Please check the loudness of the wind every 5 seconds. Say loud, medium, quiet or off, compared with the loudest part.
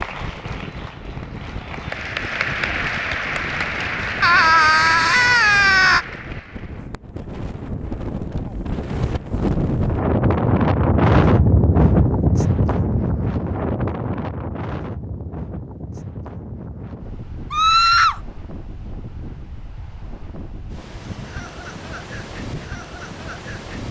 quiet, medium, loud, quiet, quiet.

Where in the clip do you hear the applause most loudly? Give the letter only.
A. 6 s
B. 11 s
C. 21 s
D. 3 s
D.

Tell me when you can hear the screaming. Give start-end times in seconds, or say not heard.
4.2-6.0, 17.5-18.2.